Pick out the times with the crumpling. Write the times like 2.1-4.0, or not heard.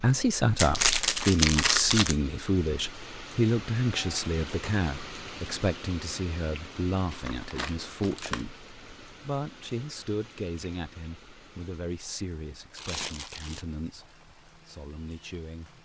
0.6-2.1, 7.1-8.4, 12.8-13.7.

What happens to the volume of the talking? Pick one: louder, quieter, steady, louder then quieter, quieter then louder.
quieter.